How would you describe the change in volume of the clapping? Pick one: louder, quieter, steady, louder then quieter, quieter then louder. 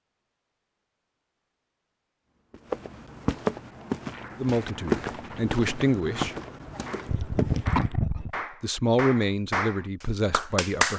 louder.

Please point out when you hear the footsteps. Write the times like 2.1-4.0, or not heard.
2.3-7.8.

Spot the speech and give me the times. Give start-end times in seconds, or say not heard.
4.4-6.3, 8.6-10.9.